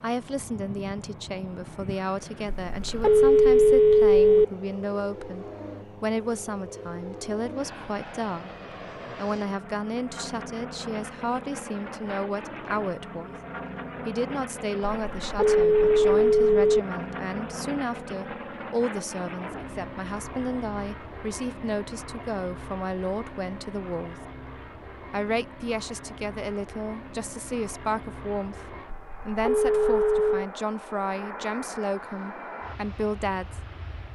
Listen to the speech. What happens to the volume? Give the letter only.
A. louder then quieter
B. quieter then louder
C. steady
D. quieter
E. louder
C.